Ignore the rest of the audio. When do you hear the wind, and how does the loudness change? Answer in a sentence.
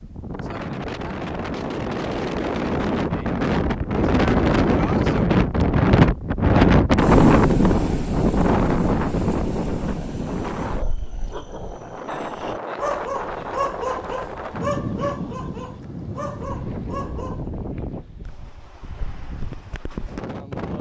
You can hear the wind from 0.0 to 20.7 s, getting louder then quieter.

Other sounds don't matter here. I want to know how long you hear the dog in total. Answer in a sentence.
You can hear the dog for 8 seconds altogether.